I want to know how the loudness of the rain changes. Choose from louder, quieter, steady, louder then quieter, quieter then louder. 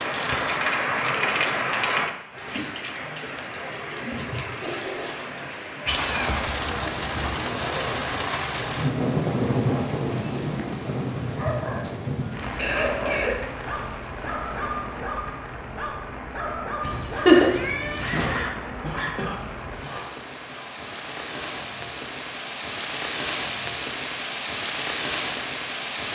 quieter then louder.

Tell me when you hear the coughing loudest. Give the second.
13 s.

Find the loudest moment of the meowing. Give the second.
17 s.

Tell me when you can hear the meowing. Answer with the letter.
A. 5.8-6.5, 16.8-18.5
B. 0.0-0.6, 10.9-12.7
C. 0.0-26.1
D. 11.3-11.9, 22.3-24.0
A.